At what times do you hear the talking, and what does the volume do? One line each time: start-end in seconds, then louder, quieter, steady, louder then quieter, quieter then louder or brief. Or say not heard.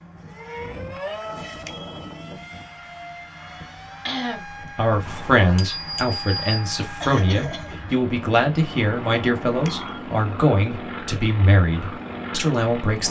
4.8-13.0 steady.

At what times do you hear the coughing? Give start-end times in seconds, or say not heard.
4.0-4.5, 7.0-7.8.